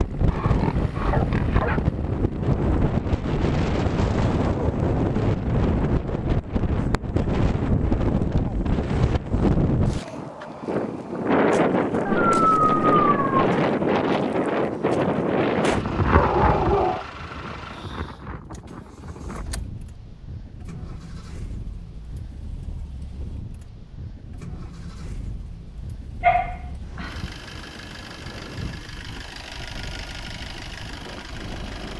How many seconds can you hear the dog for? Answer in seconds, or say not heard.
5 s.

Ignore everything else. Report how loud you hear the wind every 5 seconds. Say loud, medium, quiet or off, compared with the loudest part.
loud, loud, loud, medium, quiet, quiet, quiet.